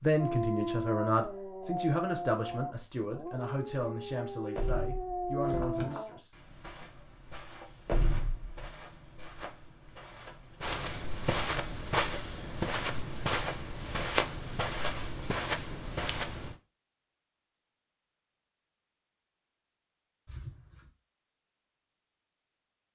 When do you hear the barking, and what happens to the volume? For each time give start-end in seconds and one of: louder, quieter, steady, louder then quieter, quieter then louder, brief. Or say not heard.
0.1-6.2 quieter then louder.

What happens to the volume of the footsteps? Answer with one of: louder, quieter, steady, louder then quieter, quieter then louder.
louder.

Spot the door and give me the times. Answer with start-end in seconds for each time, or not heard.
4.5-5.9, 7.8-8.7, 20.2-20.9.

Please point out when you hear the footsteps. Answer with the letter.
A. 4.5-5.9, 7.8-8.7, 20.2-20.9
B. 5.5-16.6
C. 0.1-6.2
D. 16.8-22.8
B.